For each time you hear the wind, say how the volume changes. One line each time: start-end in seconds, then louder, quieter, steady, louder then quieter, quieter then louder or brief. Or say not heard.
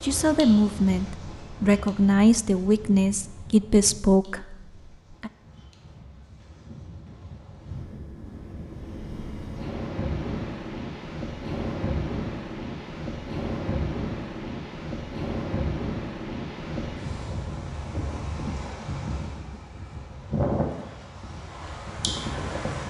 0.0-22.8 louder.